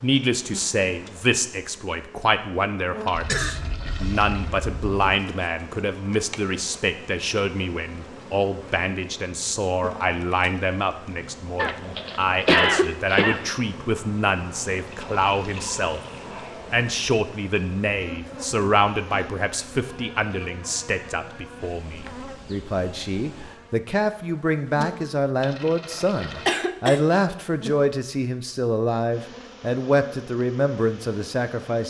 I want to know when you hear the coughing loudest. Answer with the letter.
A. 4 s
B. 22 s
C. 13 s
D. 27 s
C.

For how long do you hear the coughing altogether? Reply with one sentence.
The coughing can be heard for 4 seconds in total.